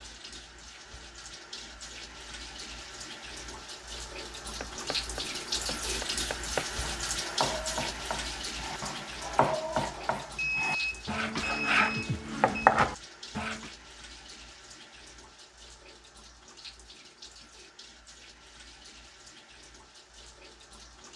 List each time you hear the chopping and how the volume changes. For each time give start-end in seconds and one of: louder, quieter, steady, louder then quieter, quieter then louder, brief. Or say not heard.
4.6-13.7 louder.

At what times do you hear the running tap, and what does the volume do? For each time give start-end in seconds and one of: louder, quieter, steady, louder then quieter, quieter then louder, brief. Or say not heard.
0.0-21.1 louder then quieter.